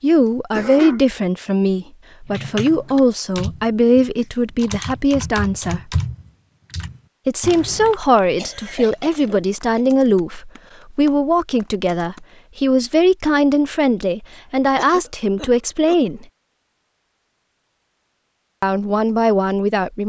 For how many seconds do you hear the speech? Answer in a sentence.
The speech can be heard for 16 seconds in total.